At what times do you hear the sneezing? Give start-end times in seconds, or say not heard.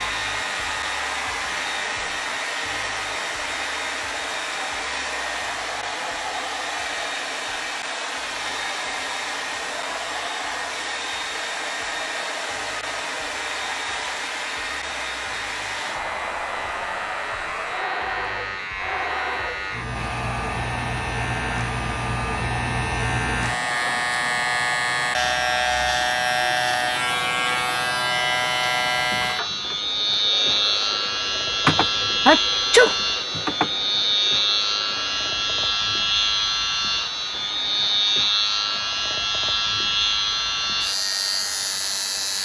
31.6-33.7.